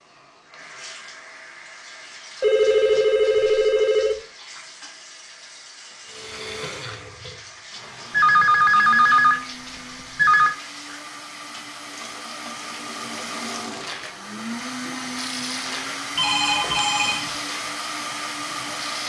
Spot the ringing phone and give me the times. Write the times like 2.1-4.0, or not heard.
2.4-4.2, 8.1-9.4, 10.2-10.6, 16.1-17.4.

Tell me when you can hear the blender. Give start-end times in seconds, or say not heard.
6.0-19.0.